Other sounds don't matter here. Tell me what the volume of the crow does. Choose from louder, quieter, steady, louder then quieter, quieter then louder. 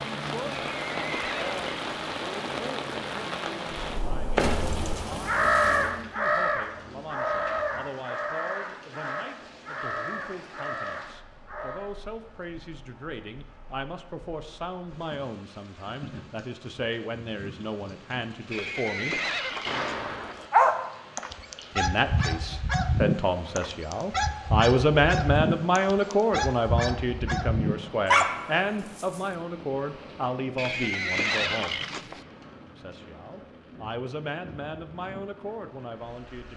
quieter.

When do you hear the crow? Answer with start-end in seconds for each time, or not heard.
3.7-11.8.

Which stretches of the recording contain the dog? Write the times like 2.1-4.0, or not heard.
19.6-29.2.